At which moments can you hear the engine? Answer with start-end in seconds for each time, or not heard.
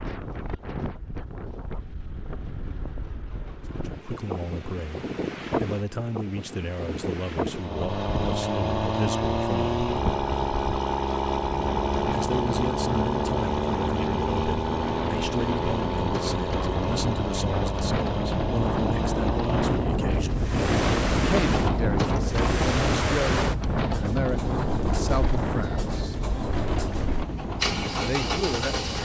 7.5-29.0.